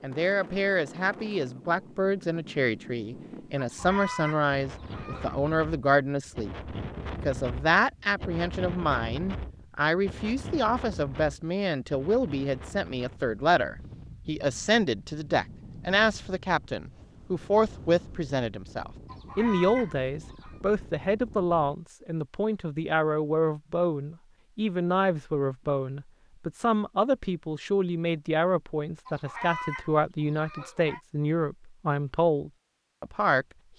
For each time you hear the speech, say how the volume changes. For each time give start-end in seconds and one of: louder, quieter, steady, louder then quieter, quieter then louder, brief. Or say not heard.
0.0-33.5 steady.